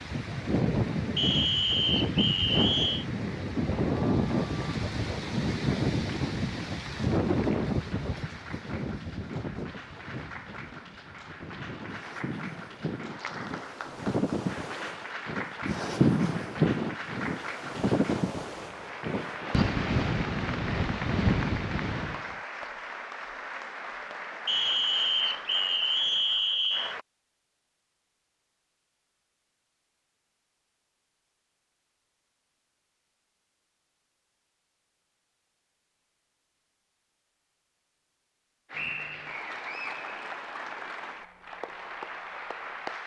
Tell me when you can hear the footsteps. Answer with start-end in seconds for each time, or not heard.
not heard.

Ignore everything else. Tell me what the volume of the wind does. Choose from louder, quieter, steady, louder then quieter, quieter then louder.
quieter then louder.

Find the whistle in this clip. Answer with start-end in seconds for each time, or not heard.
1.1-3.0, 24.4-26.9, 38.7-39.4.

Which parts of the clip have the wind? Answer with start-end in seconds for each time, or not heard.
0.0-22.4.